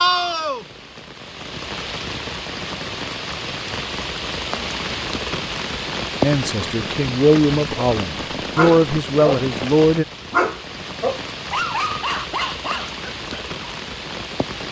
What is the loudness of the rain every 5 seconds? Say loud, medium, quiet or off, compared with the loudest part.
loud, loud, medium.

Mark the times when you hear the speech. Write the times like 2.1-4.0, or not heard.
6.2-10.1.